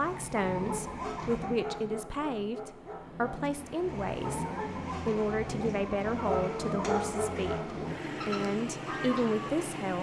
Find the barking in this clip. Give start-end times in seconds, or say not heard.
0.9-3.5, 6.2-7.9.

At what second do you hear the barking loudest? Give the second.
7 s.